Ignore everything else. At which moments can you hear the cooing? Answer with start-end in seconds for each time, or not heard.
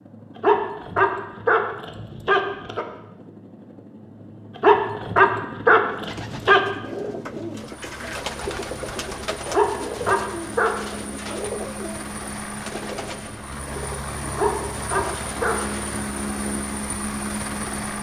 5.9-15.8.